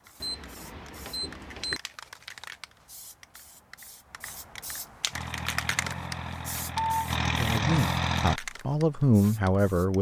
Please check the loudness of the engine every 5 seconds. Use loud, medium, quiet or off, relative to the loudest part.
off, loud.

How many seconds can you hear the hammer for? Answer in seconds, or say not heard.
not heard.